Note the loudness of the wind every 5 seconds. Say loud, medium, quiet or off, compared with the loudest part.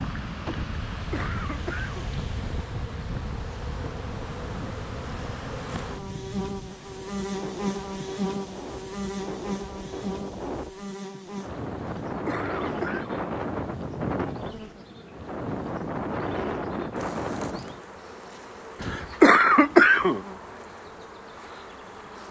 medium, medium, loud, loud, off.